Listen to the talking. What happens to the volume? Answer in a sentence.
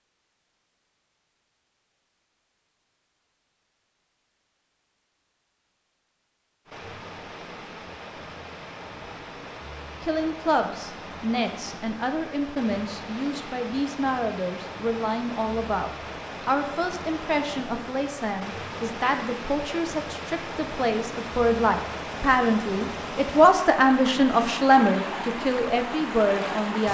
The volume of the talking goes up.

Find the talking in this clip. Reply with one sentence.
The talking can be heard from 10.0 to 26.8 s.